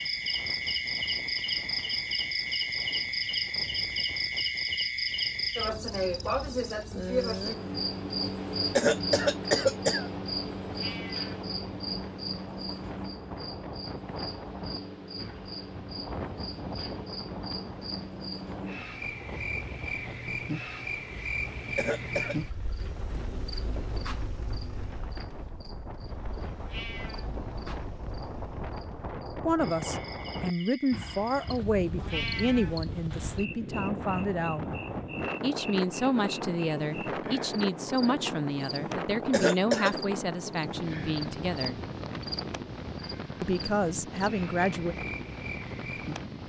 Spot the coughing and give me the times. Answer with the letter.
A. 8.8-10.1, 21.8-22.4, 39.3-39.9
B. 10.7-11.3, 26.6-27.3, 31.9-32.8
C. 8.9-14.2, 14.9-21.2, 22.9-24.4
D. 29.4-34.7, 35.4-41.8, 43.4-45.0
A.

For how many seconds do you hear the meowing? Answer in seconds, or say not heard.
2 s.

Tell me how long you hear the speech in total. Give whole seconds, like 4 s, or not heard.
13 s.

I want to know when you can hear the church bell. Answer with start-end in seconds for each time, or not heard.
not heard.